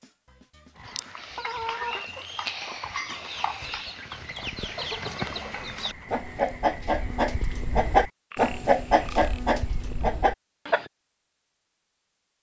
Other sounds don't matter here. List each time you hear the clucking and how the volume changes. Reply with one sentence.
The clucking can be heard from 0.8 to 10.9 s, getting louder.